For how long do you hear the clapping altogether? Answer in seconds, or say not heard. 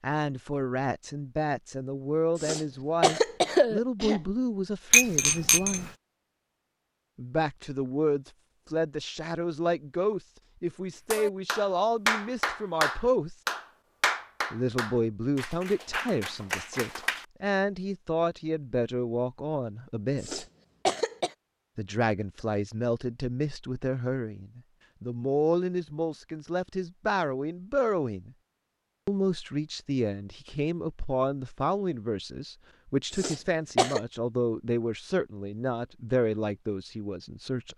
6 s.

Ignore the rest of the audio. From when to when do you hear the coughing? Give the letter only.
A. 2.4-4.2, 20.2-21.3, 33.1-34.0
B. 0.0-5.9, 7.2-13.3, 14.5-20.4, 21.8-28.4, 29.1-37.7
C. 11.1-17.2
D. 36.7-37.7
A.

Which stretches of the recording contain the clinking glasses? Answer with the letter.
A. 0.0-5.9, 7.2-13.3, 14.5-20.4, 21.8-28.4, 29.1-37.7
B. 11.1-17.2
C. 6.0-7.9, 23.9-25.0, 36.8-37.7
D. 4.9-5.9
D.